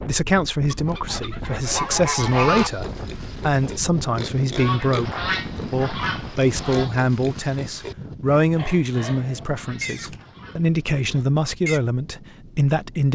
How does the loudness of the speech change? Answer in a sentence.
The volume of the speech stays about the same.